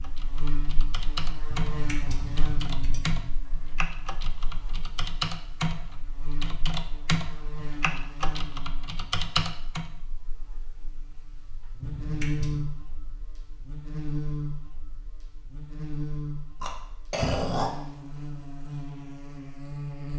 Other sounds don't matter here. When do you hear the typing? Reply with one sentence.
The typing can be heard from 0.0 to 9.8 s.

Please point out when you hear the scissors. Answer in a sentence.
The scissors can be heard from 1.5 to 3.2 s and from 11.8 to 12.7 s.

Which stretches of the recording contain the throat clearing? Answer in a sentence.
You can hear the throat clearing from 16.6 to 17.7 s.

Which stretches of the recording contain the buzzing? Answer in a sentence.
You can hear the buzzing from 0.0 to 20.1 s.